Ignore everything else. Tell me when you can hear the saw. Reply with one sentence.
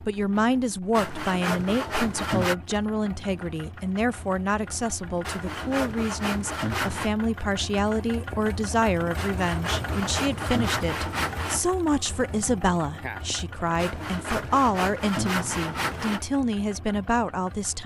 You can hear the saw from 0.9 to 2.5 s, from 5.2 to 7.1 s, from 9.2 to 11.6 s and from 13.8 to 16.2 s.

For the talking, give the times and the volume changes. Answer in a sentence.
The talking can be heard from 0.0 to 17.8 s, at a steady volume.